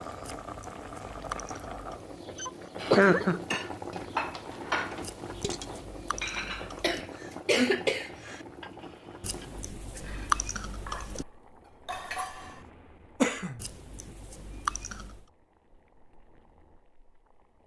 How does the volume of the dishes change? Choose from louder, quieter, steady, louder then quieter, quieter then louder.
quieter then louder.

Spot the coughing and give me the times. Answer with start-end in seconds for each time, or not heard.
2.4-3.7, 6.8-8.4, 13.2-13.6.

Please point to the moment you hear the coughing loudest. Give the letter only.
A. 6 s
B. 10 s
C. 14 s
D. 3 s
D.